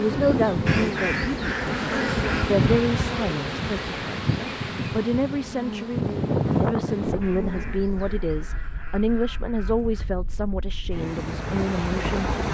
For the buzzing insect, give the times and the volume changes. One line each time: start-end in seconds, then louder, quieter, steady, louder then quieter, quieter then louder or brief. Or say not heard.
0.0-8.6 quieter.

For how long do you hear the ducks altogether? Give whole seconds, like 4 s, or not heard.
5 s.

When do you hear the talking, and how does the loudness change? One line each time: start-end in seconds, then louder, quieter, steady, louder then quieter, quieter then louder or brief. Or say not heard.
0.0-12.3 steady.